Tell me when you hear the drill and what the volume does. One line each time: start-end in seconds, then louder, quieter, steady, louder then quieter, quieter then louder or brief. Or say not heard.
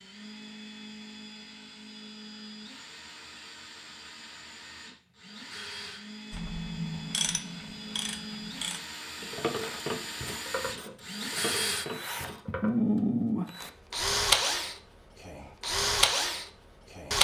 0.0-17.1 louder.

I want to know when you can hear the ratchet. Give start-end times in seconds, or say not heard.
6.3-12.8.